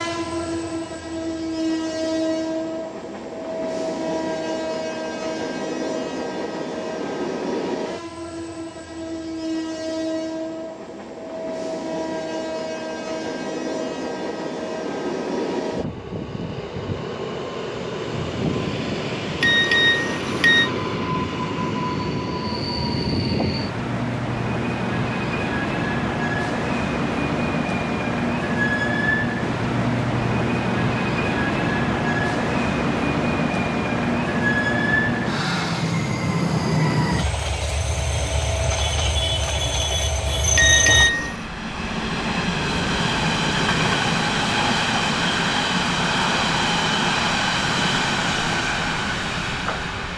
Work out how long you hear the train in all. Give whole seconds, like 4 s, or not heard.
50 s.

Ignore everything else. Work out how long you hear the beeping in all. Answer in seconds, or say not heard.
2 s.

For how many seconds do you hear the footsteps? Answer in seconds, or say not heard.
not heard.